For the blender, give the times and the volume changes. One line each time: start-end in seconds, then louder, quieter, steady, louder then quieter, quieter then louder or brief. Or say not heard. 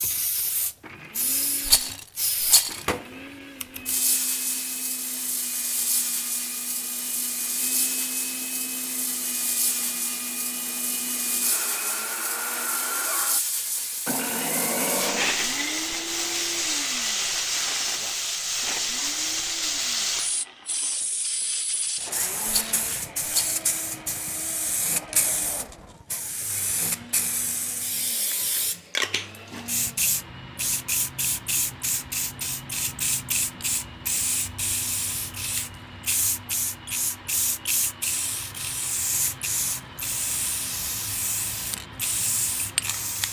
0.0-43.2 louder then quieter.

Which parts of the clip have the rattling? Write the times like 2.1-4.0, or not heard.
1.6-2.9, 22.4-23.6.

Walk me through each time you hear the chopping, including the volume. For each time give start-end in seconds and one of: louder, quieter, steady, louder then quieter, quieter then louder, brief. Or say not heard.
not heard.